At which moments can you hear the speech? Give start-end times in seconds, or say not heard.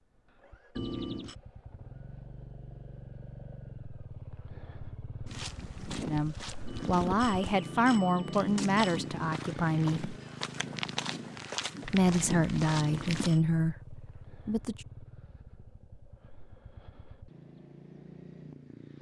6.0-10.2, 11.8-14.8.